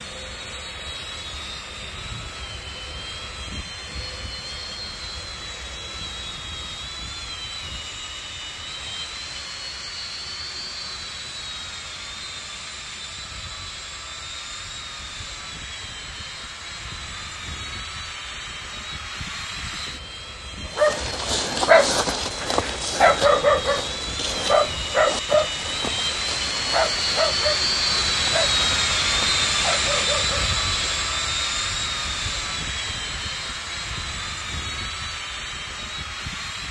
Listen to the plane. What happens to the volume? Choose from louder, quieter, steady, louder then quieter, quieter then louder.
louder.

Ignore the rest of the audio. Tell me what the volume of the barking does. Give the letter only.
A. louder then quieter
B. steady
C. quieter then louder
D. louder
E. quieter
E.